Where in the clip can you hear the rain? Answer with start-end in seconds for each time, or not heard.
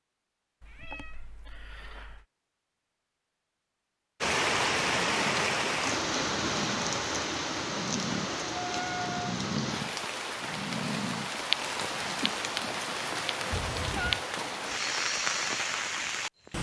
4.2-16.5.